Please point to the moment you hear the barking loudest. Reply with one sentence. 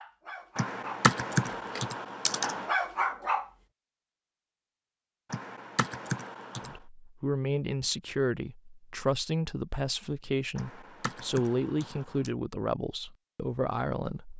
The loudest moment of the barking is at 3 seconds.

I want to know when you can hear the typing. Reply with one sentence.
The typing can be heard from 0.6 to 2.7 s, from 5.3 to 6.8 s and from 10.6 to 12.3 s.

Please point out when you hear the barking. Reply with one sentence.
You can hear the barking from 0.0 to 3.5 s.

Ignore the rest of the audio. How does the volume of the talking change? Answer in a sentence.
The loudness of the talking stays about the same.